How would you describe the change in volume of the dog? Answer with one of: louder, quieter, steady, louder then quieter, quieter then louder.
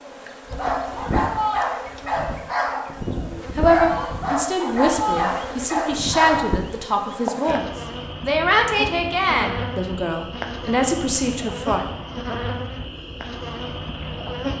steady.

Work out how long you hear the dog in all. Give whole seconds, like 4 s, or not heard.
6 s.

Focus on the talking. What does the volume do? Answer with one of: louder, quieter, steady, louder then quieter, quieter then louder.
steady.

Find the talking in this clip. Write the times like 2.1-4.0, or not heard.
3.5-11.8.